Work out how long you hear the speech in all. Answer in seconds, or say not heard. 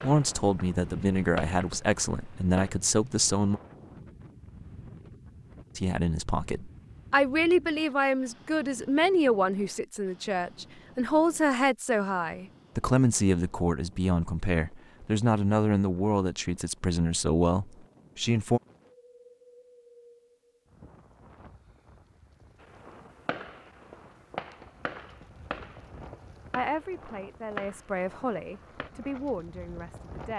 20 s.